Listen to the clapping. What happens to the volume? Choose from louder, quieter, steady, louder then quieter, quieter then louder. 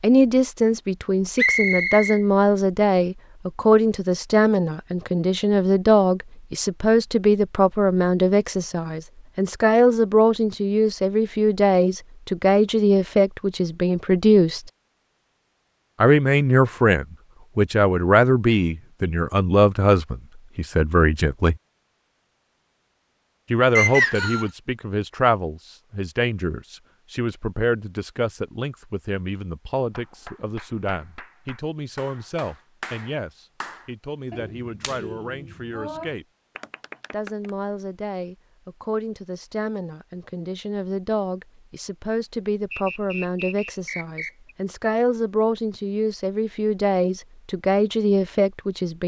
louder.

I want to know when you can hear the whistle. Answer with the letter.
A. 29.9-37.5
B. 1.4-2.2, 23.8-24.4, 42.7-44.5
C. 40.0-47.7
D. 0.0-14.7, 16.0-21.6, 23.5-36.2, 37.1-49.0
B.